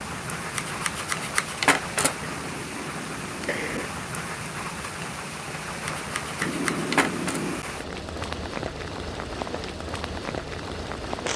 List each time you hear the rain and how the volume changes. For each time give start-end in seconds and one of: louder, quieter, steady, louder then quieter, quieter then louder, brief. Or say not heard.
0.0-11.3 steady.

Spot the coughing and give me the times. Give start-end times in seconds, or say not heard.
2.2-4.0, 6.4-7.7.